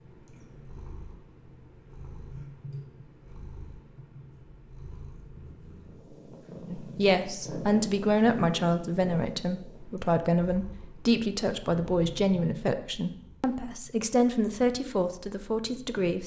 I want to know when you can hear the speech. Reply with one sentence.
You can hear the speech from 6.7 to 16.2 s.